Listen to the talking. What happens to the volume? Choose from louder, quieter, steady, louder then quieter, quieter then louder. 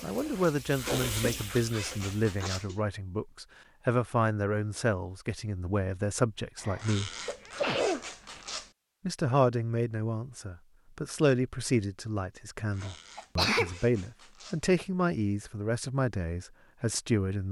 steady.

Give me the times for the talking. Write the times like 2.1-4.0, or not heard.
0.0-7.1, 9.1-17.4.